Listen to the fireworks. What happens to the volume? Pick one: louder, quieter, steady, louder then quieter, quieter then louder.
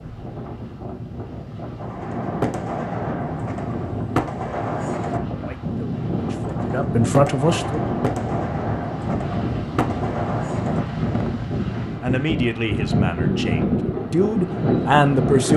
steady.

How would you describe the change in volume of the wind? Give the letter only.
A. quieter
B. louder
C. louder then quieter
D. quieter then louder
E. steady
B.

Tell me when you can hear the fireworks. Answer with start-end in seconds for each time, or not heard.
1.8-11.6.